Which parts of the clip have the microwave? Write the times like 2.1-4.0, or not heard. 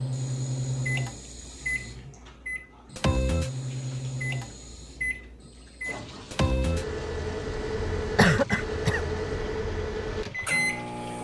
0.0-11.1.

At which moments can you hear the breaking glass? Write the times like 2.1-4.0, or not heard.
not heard.